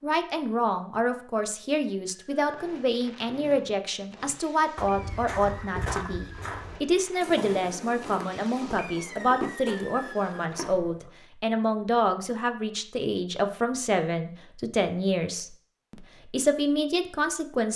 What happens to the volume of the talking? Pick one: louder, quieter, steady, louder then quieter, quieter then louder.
steady.